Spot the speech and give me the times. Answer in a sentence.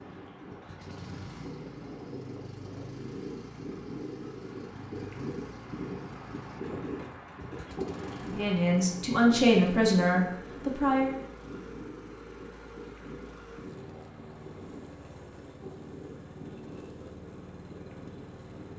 The speech can be heard from 8.2 to 11.1 s.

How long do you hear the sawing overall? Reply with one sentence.
The sawing can't be heard in this clip.